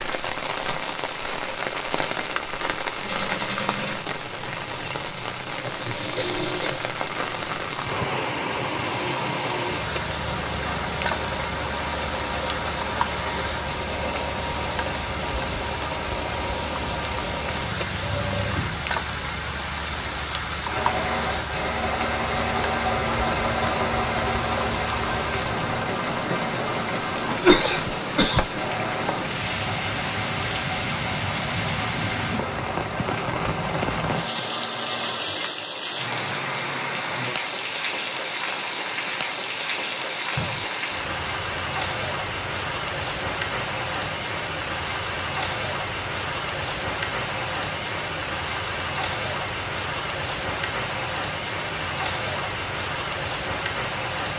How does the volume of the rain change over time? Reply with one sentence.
The volume of the rain stays about the same.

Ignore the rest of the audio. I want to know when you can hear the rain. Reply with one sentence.
You can hear the rain from 0.0 to 54.3 s.